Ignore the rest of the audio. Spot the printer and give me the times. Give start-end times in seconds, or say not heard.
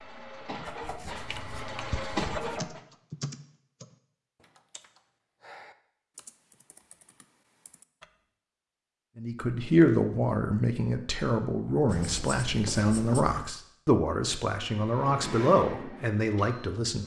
0.0-2.8, 14.7-17.0.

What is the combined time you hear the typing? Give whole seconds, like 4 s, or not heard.
7 s.